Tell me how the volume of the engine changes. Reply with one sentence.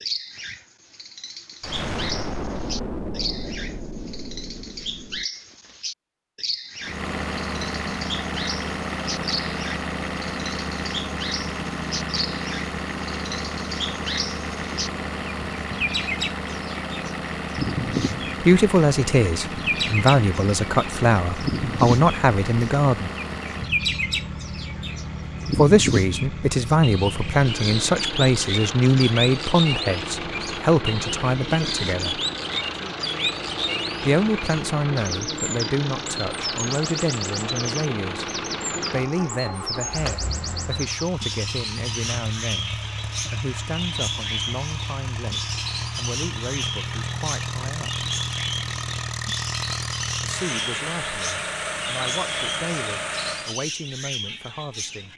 The volume of the engine stays about the same.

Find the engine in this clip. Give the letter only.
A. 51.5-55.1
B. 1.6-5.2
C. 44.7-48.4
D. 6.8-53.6
D.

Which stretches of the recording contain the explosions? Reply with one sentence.
The explosions can be heard from 1.6 to 5.2 s.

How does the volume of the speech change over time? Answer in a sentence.
The volume of the speech goes down.